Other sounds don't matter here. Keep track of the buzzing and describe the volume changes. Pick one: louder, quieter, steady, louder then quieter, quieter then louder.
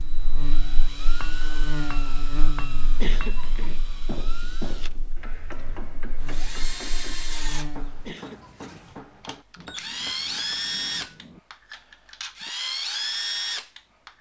quieter then louder.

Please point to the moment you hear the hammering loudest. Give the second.
5 s.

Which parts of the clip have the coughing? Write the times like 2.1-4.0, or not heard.
2.8-4.0, 7.8-9.3.